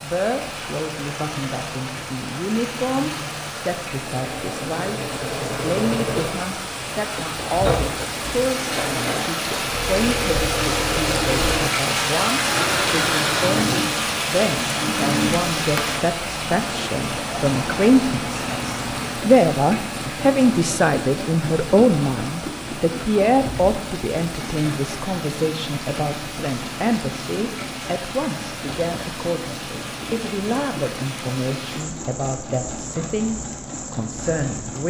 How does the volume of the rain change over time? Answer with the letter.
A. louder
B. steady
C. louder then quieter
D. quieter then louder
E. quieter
C.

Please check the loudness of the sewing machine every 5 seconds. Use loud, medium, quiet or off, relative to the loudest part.
medium, loud, loud, loud, medium, medium, medium.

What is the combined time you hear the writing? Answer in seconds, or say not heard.
not heard.